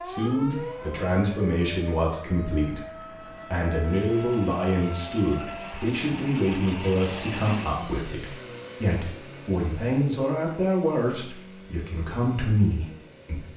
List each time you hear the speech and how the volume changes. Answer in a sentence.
The speech can be heard from 0.1 to 13.5 s, at a steady volume.